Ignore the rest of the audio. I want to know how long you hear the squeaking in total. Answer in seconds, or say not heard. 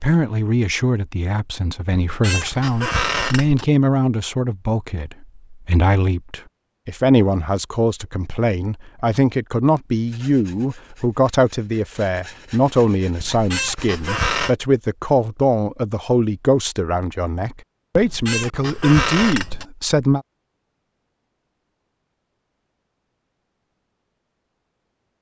5 s.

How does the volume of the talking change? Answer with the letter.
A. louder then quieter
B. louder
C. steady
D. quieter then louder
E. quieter
C.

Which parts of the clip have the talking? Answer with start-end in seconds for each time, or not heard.
0.0-20.2.